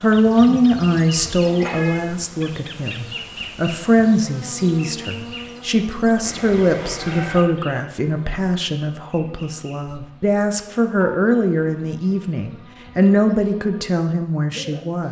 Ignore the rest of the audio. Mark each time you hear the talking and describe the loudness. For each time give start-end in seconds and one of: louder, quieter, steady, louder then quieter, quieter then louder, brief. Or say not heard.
0.0-15.0 steady.